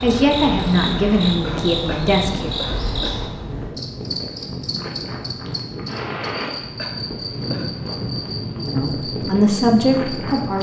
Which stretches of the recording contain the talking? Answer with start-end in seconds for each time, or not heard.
0.0-2.5, 8.7-10.5.